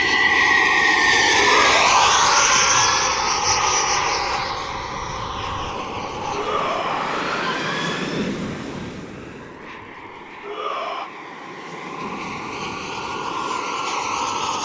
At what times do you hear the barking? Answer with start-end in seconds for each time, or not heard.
not heard.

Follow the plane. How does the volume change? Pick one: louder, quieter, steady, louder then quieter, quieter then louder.
quieter then louder.